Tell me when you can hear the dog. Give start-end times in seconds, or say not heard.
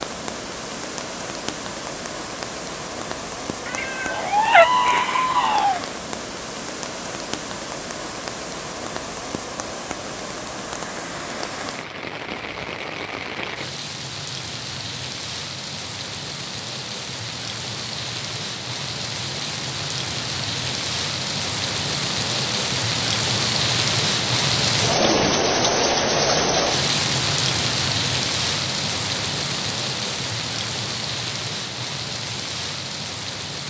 not heard.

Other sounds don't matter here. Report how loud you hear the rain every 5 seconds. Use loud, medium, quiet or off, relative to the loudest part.
medium, medium, medium, medium, loud, loud, medium.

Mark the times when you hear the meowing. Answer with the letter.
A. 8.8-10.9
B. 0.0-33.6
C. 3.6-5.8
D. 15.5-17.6
C.